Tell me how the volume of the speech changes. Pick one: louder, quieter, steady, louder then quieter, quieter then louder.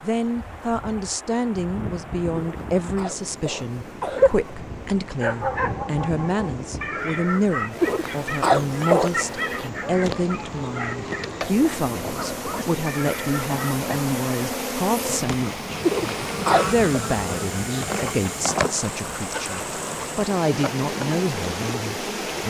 steady.